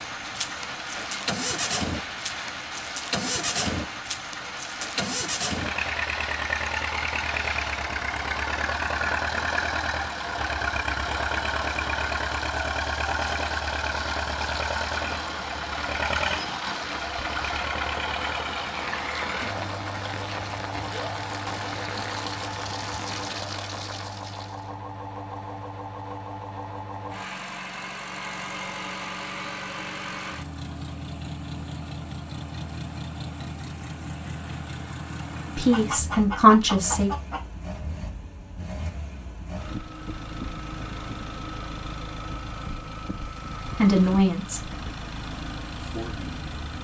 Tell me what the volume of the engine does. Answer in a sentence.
The loudness of the engine goes down.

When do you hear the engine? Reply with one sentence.
You can hear the engine from 0.0 to 46.7 s.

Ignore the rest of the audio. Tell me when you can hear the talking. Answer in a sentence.
The talking can be heard from 35.5 to 37.1 s, from 43.8 to 44.6 s and from 45.8 to 46.5 s.